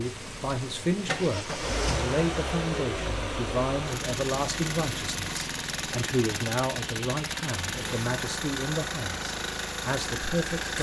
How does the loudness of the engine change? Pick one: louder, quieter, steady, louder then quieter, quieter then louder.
steady.